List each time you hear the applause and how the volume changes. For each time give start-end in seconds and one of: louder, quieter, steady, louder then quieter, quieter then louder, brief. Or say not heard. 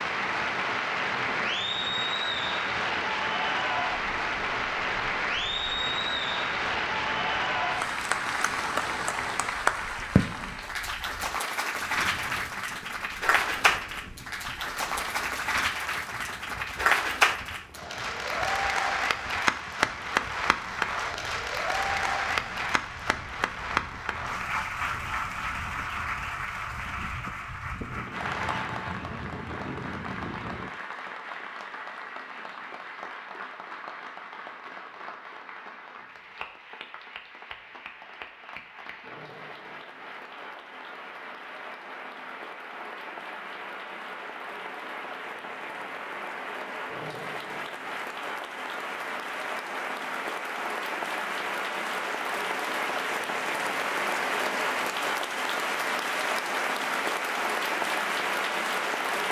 0.0-59.2 quieter then louder.